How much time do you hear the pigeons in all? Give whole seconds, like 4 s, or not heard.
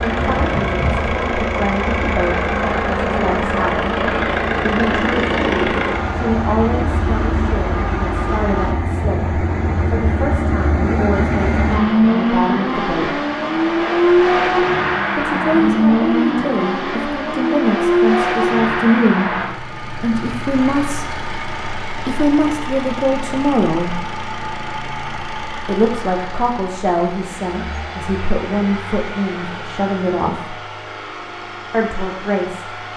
not heard.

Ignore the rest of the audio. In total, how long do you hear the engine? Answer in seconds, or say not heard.
33 s.